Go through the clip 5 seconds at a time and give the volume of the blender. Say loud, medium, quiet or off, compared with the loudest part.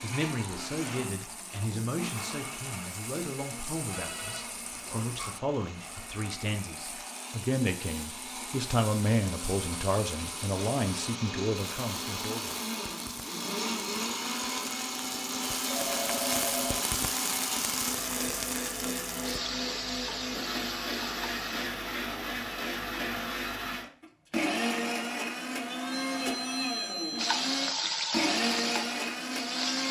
medium, medium, loud, loud, loud, loud.